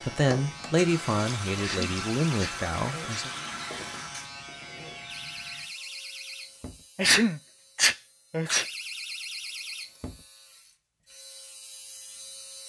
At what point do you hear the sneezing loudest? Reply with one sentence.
The volume of the sneezing peaks at 7 seconds.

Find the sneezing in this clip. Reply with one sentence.
The sneezing can be heard from 1.6 to 3.2 s and from 7.0 to 8.7 s.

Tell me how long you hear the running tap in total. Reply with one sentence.
The running tap can be heard for 4 seconds in total.